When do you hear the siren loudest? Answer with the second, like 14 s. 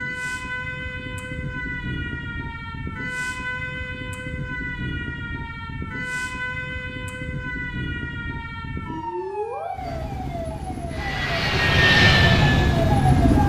13 s.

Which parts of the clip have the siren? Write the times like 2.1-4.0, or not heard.
0.0-13.4.